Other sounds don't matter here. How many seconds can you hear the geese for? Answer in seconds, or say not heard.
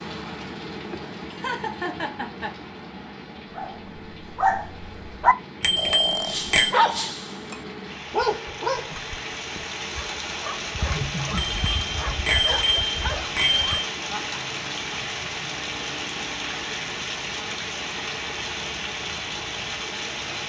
not heard.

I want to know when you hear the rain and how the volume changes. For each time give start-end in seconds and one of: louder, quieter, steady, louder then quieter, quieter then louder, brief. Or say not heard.
0.0-20.4 louder.